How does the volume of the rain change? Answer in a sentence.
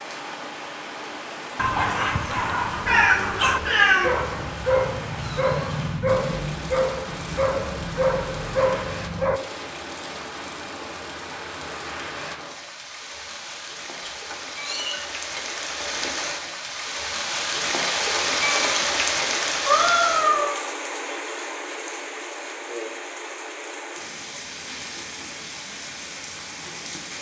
The volume of the rain goes up, then down.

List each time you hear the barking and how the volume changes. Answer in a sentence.
You can hear the barking from 1.6 to 9.4 s, at a steady volume.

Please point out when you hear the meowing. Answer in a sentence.
The meowing can be heard from 2.8 to 4.1 s, from 14.1 to 16.1 s and from 19.6 to 20.6 s.